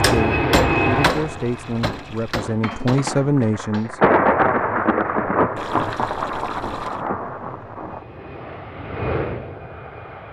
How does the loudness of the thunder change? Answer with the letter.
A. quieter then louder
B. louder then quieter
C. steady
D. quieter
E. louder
D.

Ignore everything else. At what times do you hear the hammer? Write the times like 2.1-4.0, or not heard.
0.0-3.9.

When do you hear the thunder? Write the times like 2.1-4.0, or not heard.
3.1-8.1.